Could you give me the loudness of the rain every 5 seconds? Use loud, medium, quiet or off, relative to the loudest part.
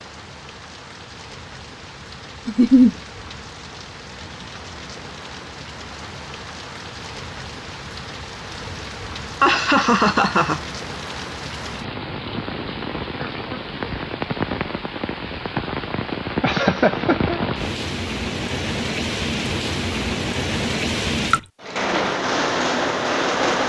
quiet, quiet, medium, loud, loud.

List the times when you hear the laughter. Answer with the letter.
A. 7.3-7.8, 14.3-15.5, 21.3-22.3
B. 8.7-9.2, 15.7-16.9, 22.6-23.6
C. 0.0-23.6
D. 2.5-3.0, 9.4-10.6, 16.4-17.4
D.